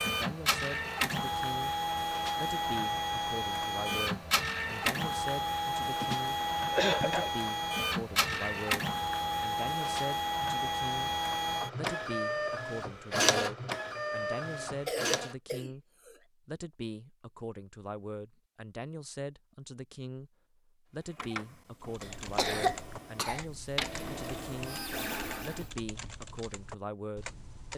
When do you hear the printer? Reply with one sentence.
The printer can be heard from 0.0 to 15.3 s and from 20.9 to 25.7 s.